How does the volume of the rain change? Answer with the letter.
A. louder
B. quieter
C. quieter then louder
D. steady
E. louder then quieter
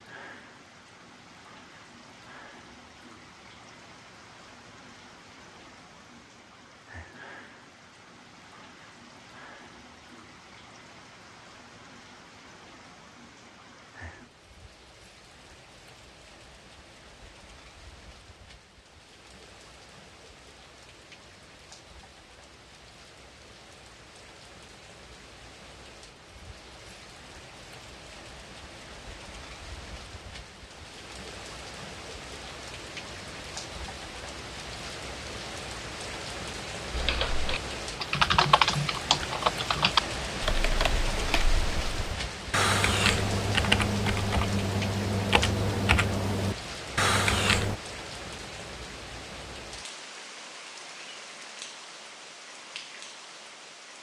A.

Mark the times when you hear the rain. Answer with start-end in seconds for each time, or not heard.
0.0-53.9.